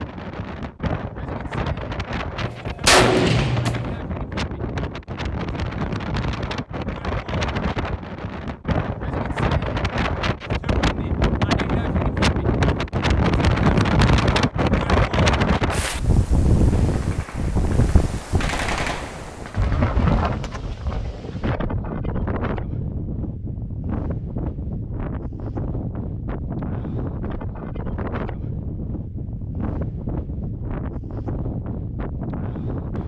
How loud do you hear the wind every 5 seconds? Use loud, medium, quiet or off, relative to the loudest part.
medium, medium, loud, loud, medium, medium, medium.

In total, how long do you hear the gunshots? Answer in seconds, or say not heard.
5 s.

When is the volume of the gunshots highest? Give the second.
3 s.